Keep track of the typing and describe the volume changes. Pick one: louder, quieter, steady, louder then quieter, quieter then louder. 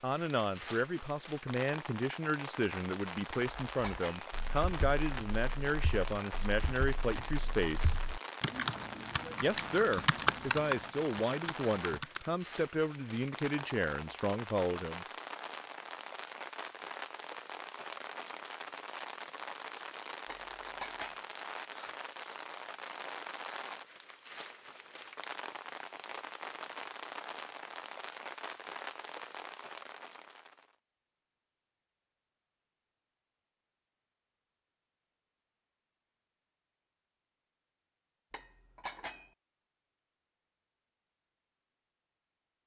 louder.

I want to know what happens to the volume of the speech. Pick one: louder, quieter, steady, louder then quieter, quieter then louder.
steady.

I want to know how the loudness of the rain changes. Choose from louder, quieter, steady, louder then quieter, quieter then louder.
steady.